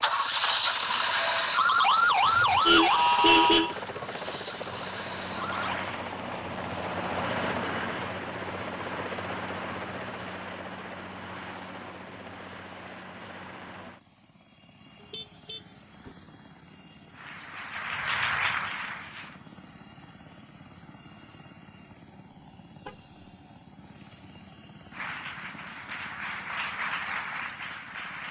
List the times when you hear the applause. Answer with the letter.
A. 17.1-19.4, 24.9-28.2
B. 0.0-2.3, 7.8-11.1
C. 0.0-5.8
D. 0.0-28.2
A.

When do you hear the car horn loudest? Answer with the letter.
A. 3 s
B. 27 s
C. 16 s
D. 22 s
A.